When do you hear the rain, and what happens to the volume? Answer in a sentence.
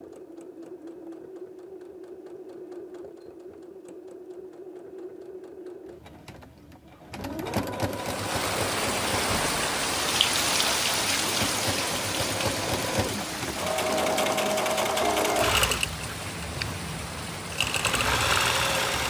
The rain can be heard from 7.8 to 19.0 s, getting quieter.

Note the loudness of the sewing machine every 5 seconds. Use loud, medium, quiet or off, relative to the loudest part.
quiet, medium, loud, loud.